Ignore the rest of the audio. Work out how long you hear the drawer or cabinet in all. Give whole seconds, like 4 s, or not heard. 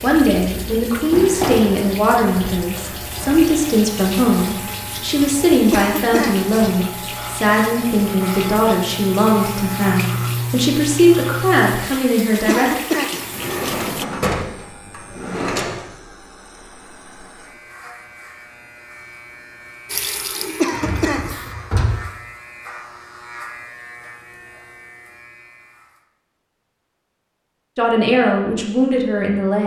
5 s.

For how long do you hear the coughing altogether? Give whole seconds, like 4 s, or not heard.
2 s.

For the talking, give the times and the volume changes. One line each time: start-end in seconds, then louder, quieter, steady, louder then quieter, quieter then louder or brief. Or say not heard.
0.0-12.8 steady
27.8-29.6 brief.